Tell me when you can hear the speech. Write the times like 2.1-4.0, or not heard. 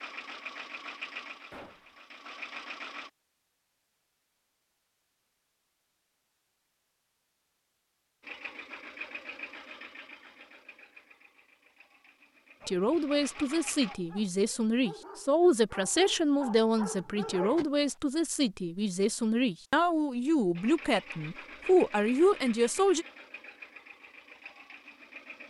12.7-23.1.